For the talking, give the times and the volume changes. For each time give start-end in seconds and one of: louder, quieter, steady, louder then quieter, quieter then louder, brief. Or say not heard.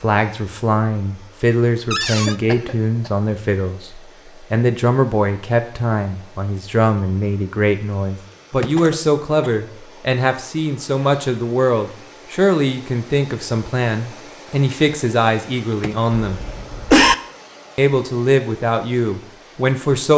0.0-16.4 steady
17.8-20.1 brief.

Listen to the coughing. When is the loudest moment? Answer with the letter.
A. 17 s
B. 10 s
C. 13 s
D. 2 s
A.